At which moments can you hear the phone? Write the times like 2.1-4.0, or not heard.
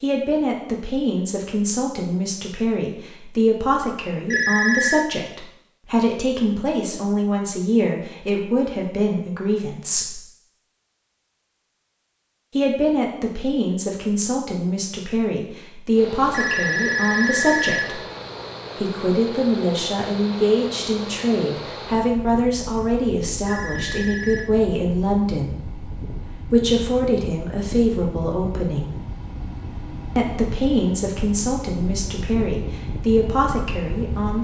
4.3-5.0, 16.3-17.9, 23.4-24.5.